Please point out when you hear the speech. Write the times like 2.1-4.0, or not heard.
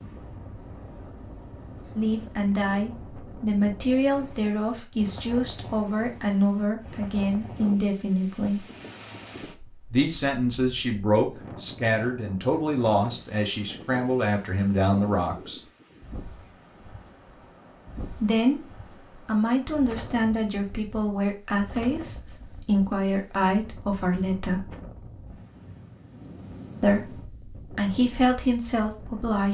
1.9-8.7, 9.9-15.6, 18.1-24.7, 26.8-29.4.